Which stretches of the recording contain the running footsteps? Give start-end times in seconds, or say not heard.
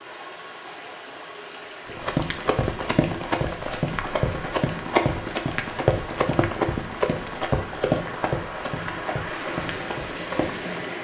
1.9-10.8.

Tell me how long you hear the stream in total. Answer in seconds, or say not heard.
11 s.